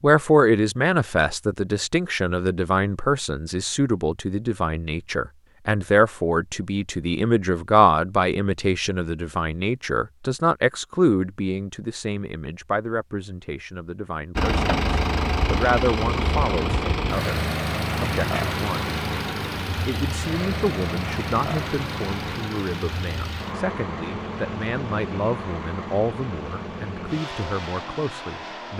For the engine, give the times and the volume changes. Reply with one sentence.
You can hear the engine from 14.3 to 28.7 s, getting quieter.